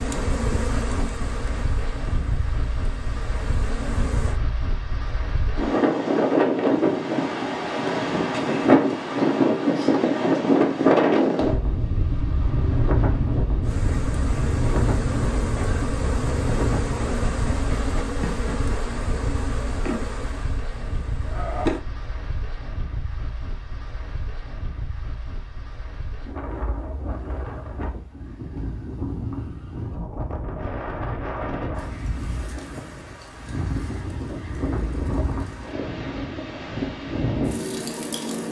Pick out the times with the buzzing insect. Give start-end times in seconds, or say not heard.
0.0-4.3, 13.6-21.8.